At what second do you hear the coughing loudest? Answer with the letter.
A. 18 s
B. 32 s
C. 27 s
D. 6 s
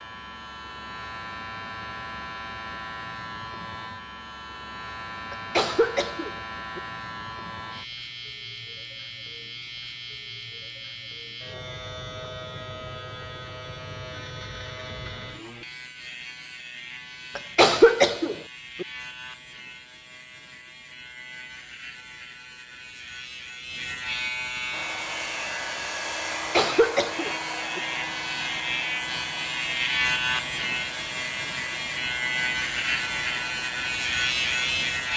A.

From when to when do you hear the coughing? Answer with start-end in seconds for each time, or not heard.
5.3-6.8, 17.4-18.9, 26.3-27.8.